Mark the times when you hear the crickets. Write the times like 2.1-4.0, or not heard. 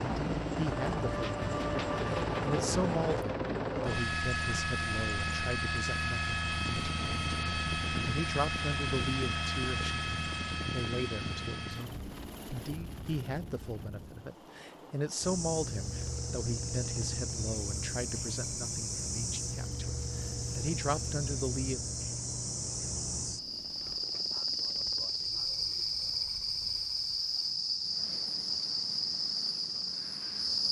15.2-30.6.